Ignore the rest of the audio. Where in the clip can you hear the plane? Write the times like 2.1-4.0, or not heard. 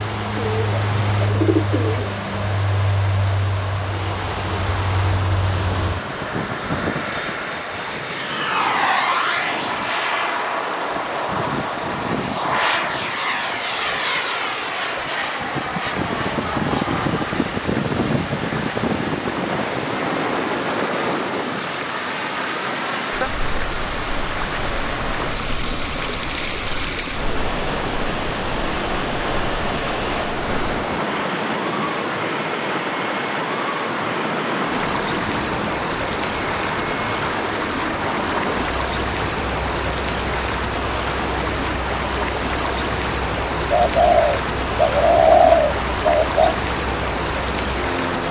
0.0-48.2.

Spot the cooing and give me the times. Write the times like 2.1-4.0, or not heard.
0.3-2.1, 43.7-46.5.